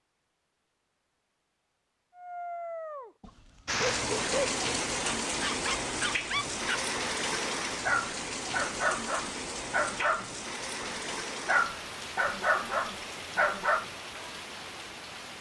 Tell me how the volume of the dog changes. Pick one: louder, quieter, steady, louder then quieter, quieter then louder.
louder.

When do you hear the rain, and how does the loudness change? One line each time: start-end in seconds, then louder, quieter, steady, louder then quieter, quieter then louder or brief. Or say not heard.
3.6-15.3 quieter.